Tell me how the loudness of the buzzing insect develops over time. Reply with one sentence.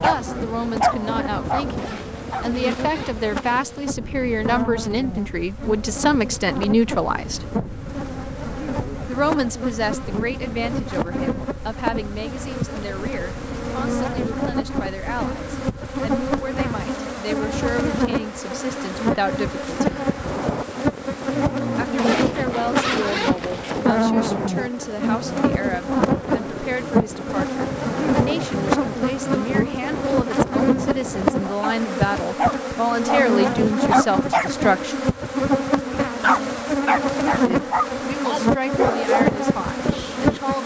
The loudness of the buzzing insect goes up.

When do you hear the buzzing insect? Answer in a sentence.
You can hear the buzzing insect from 0.0 to 40.6 s.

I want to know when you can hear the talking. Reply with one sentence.
The talking can be heard from 0.0 to 7.5 s, from 9.1 to 19.9 s, from 21.8 to 35.0 s and from 37.5 to 40.6 s.